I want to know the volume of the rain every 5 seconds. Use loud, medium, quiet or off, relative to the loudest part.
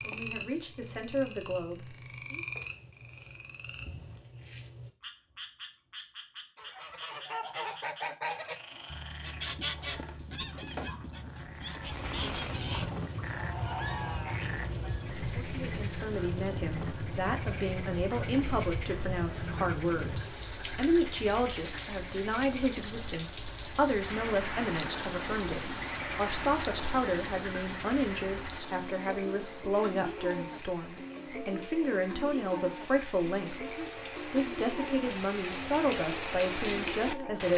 off, off, loud, loud, loud, loud, medium, loud.